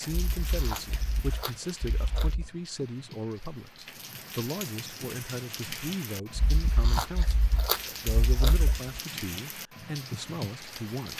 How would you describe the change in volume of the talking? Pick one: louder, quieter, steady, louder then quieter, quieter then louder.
steady.